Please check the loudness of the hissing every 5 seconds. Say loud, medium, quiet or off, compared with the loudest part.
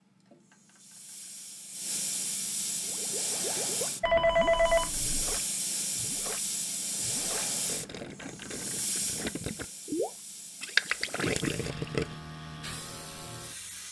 loud, loud, medium.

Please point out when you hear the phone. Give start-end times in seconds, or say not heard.
4.0-5.4.